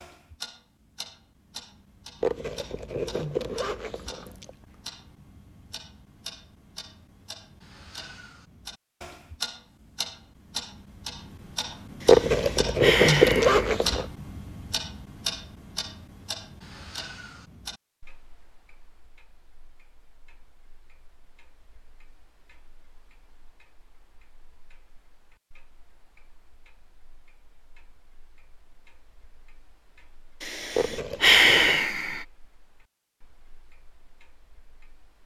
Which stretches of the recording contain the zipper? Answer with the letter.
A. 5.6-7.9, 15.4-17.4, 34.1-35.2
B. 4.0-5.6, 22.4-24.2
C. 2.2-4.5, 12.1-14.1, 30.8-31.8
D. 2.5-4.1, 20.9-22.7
C.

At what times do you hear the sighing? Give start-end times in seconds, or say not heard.
12.0-13.7, 30.4-32.2.